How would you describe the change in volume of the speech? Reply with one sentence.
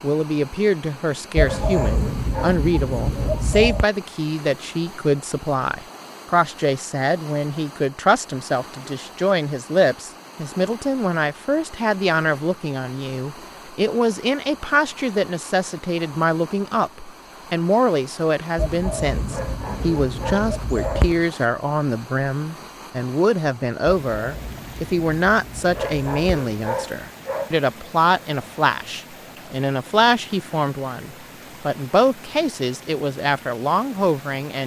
The loudness of the speech stays about the same.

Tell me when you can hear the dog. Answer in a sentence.
The dog can be heard from 1.4 to 2.6 s, from 19.3 to 21.1 s and from 25.7 to 27.6 s.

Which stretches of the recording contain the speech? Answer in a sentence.
The speech can be heard from 0.0 to 34.6 s.